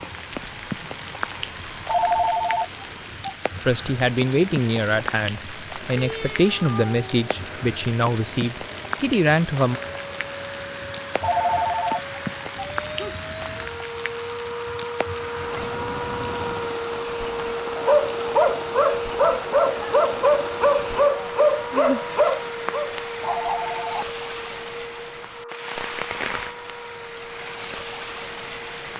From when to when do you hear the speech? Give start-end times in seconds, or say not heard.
3.6-9.8.